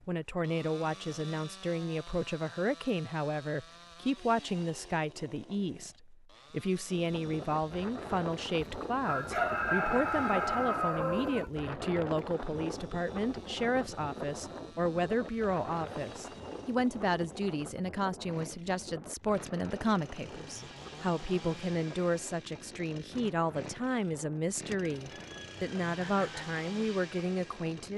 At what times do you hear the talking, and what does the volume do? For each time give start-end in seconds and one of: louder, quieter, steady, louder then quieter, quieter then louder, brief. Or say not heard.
0.1-27.9 steady.